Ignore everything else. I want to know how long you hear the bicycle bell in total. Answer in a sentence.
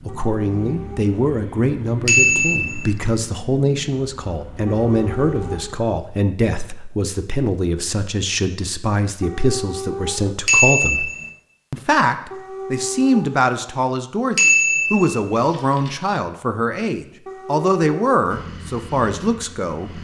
You can hear the bicycle bell for 3 seconds altogether.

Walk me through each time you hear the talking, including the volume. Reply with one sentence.
The talking can be heard from 0.1 to 11.1 s, at a steady volume; and from 11.7 to 19.9 s, at a steady volume.